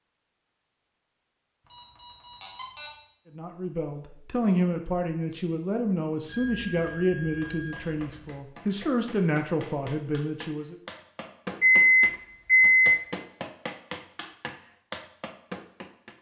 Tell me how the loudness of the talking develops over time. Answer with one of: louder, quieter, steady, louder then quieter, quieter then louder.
steady.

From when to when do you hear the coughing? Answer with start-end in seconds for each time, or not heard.
not heard.